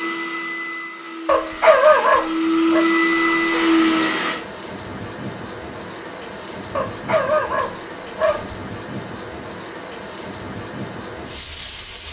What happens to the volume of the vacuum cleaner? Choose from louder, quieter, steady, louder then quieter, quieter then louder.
louder.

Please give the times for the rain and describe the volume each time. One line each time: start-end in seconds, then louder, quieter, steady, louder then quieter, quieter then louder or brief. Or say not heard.
3.0-12.0 steady.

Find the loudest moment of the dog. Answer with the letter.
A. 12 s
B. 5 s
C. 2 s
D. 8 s
C.